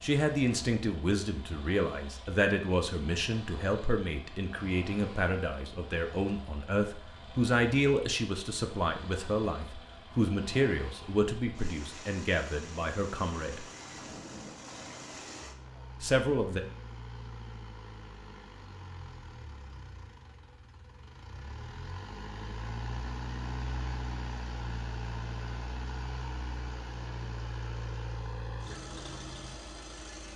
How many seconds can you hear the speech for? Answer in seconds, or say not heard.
14 s.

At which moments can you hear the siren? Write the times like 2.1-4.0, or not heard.
not heard.